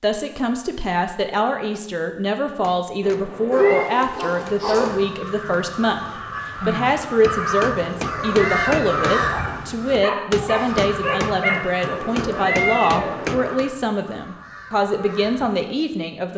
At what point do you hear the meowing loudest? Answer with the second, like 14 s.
13 s.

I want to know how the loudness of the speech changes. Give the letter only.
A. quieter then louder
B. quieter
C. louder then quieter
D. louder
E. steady
E.